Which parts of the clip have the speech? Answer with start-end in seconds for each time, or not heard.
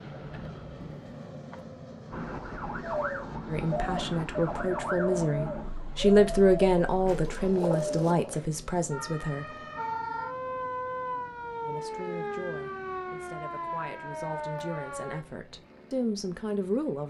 3.5-9.4, 11.6-17.0.